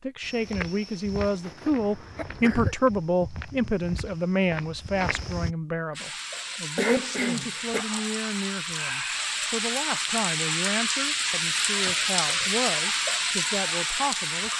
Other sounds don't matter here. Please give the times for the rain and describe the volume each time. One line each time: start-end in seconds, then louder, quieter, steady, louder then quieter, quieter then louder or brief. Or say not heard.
6.0-14.5 louder.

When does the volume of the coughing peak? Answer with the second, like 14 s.
7 s.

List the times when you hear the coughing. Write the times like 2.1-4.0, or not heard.
1.4-2.8, 5.9-7.8, 11.8-12.5.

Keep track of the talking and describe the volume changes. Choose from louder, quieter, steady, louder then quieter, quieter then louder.
quieter.